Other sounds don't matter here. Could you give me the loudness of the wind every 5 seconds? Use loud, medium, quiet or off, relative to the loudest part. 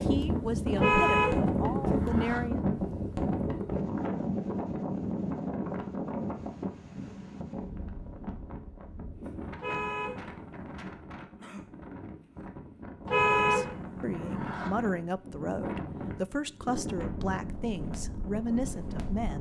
loud, medium, quiet, medium.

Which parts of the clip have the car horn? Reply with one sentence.
The car horn can be heard from 0.8 to 2.4 s, from 9.6 to 10.9 s and from 13.1 to 14.7 s.